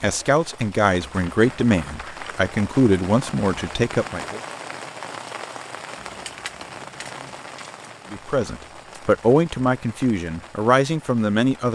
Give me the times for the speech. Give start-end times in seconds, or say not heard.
0.0-4.4, 8.1-11.7.